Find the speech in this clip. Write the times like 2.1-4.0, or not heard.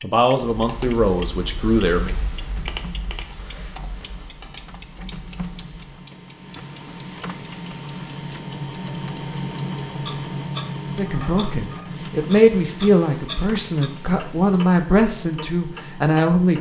0.0-2.1, 10.9-16.5.